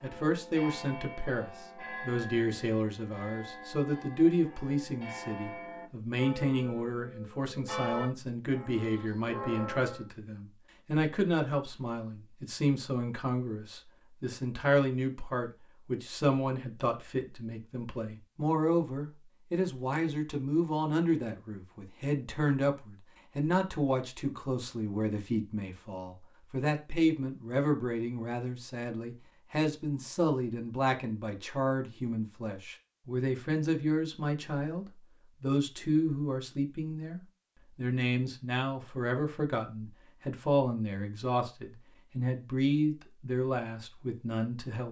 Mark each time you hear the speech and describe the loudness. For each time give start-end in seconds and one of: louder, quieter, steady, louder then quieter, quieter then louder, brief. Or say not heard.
0.0-44.8 steady.